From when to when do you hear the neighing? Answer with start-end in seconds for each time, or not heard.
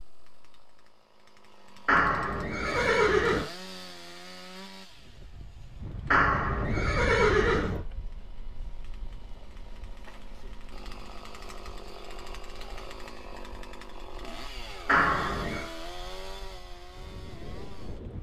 1.9-3.5, 6.1-7.8, 14.8-15.7.